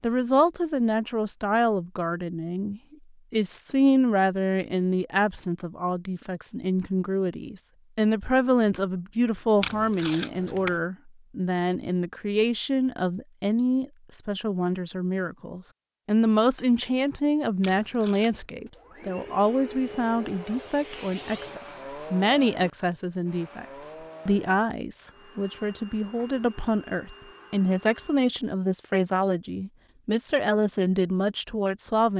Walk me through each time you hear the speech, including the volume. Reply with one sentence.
The speech can be heard from 0.0 to 32.1 s, at a steady volume.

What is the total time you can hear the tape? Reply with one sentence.
You can hear the tape for 2 seconds altogether.